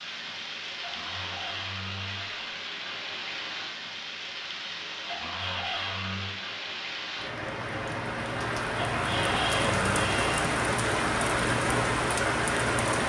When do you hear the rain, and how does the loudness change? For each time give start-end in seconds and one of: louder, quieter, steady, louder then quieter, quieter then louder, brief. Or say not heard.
0.0-13.0 louder.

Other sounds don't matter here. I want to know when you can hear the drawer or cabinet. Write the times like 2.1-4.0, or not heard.
0.8-2.5, 5.0-6.3, 8.8-10.4.